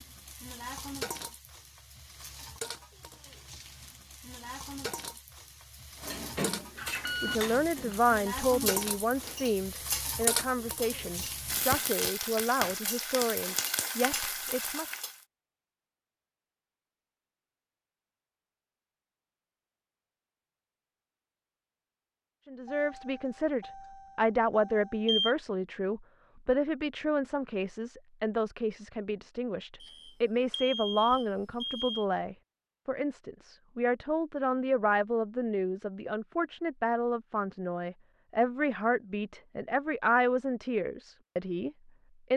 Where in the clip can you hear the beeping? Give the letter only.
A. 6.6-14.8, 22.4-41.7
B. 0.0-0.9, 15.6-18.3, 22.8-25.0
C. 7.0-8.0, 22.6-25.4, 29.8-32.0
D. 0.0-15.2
C.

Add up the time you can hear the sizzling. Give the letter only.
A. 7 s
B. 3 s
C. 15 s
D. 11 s
C.